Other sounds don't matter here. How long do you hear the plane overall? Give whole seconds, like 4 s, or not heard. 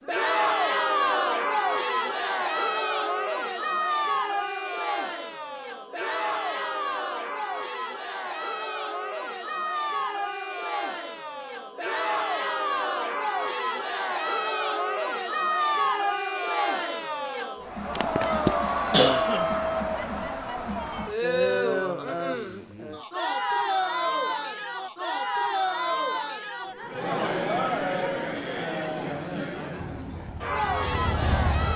2 s.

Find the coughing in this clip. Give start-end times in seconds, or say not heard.
17.9-19.4.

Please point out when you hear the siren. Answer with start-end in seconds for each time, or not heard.
not heard.